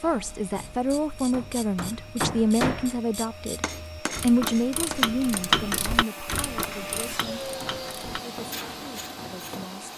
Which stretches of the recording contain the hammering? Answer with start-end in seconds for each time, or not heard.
0.0-3.0, 3.6-9.7.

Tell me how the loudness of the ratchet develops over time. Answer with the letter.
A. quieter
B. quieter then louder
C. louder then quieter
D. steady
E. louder
C.